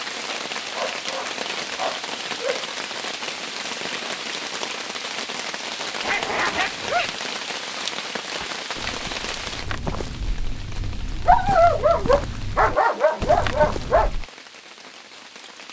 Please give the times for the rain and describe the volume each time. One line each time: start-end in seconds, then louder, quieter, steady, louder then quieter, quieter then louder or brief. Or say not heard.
0.0-15.6 quieter.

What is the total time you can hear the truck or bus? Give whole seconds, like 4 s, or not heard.
not heard.